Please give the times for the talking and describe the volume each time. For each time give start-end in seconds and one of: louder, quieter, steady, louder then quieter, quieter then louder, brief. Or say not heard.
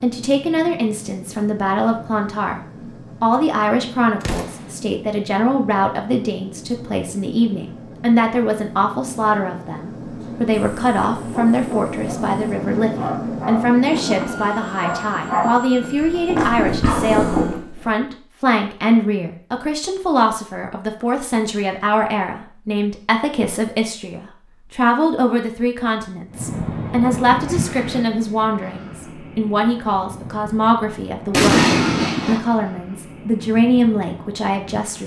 0.0-2.6 brief
3.2-35.0 steady.